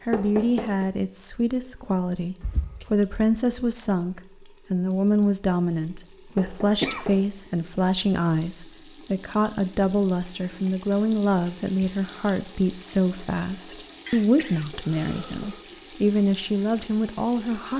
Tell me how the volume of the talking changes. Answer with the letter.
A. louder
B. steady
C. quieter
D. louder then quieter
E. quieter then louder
B.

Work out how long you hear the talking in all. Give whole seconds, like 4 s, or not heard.
18 s.